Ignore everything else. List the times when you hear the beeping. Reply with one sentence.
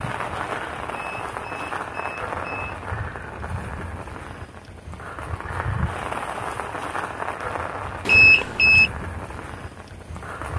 You can hear the beeping from 0.9 to 2.8 s and from 8.1 to 8.9 s.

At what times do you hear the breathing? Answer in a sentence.
You can't hear the breathing here.